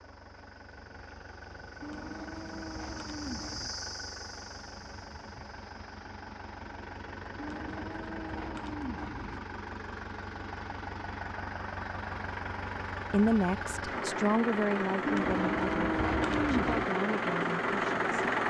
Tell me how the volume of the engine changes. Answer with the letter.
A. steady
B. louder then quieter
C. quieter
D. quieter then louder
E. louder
E.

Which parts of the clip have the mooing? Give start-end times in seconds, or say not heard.
1.8-3.7, 7.3-9.4, 15.1-16.9.